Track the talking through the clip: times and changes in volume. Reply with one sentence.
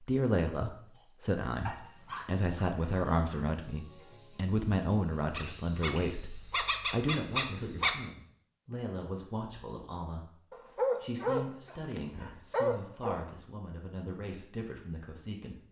The talking can be heard from 0.0 to 15.6 s, getting quieter.